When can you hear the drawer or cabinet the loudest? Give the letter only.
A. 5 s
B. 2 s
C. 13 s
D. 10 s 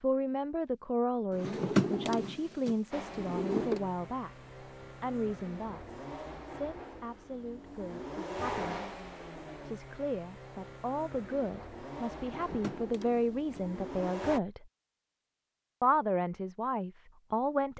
B.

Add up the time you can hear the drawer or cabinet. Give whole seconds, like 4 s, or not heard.
4 s.